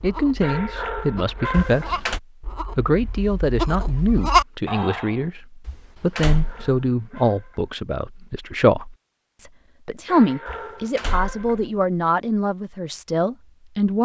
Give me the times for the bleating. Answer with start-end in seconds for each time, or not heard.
0.0-5.2.